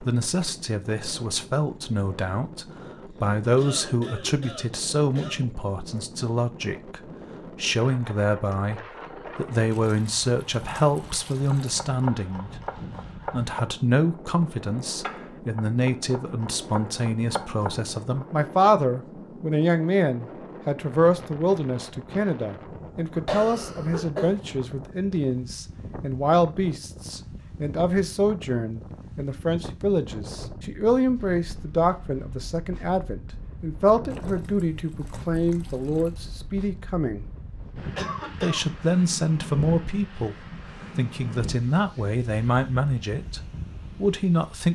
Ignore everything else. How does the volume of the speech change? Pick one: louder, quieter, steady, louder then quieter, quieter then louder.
steady.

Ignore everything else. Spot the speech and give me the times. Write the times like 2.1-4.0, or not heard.
0.0-12.5, 13.3-37.2, 38.4-44.7.